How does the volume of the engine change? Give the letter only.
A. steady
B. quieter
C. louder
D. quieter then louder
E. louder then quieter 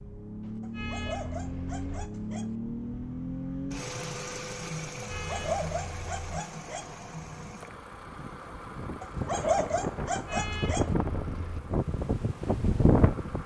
B.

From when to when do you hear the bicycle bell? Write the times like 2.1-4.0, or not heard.
not heard.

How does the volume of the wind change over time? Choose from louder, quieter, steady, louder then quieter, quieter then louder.
louder.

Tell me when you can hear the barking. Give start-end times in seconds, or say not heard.
0.6-2.5, 5.2-7.0, 9.0-10.9.